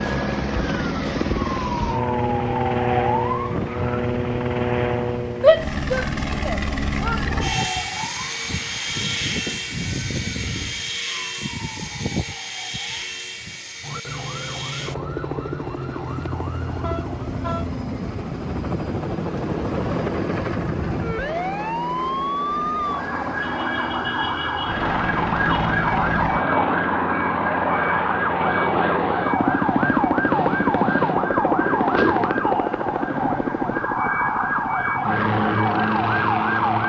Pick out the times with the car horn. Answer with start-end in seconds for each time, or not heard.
16.3-17.8.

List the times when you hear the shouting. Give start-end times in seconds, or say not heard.
5.4-7.2.